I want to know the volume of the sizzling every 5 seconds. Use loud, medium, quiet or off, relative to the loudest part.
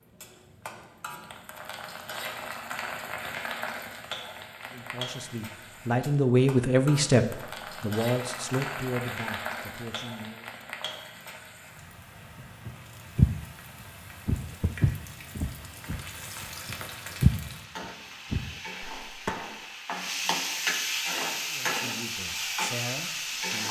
medium, medium, quiet, medium, loud.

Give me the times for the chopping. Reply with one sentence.
You can't hear the chopping here.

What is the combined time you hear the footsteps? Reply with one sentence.
The footsteps can be heard for 7 seconds in total.